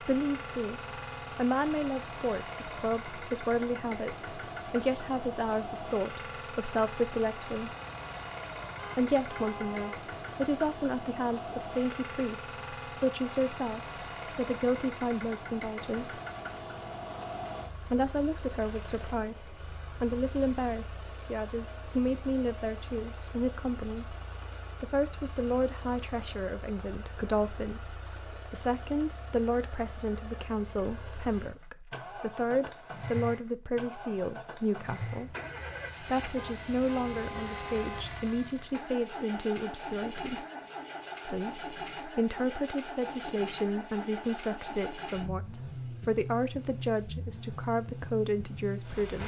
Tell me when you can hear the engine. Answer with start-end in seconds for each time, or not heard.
0.0-49.2.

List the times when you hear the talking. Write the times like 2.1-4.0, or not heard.
0.0-7.7, 8.9-16.2, 17.8-24.1, 24.8-35.4, 36.0-40.5, 41.2-49.2.